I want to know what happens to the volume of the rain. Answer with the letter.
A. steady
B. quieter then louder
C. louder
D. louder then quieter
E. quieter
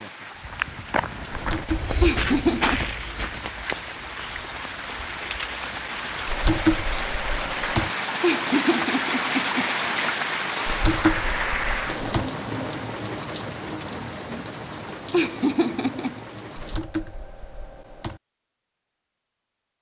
D.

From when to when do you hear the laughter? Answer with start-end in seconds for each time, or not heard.
2.0-2.8, 8.2-9.7, 15.1-16.2.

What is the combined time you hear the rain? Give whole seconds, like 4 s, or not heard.
17 s.